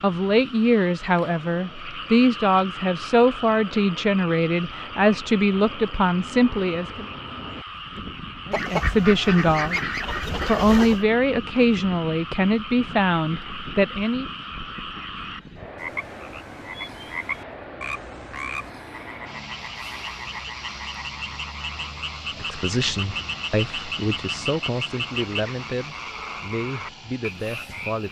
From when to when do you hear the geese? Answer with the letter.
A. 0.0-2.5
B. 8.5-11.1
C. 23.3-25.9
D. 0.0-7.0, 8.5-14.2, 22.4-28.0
B.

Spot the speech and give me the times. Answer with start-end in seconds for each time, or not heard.
0.0-7.0, 8.5-14.2, 22.4-28.0.